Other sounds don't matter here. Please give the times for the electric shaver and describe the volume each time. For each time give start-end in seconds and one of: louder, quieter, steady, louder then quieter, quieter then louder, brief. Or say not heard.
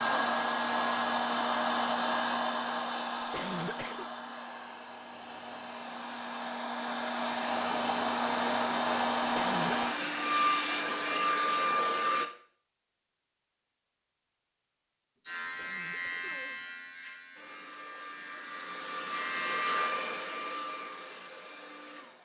15.2-19.9 quieter then louder.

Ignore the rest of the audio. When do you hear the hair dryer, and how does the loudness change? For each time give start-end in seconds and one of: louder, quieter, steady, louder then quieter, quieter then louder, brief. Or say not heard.
0.0-12.3 quieter then louder
17.4-22.1 louder then quieter.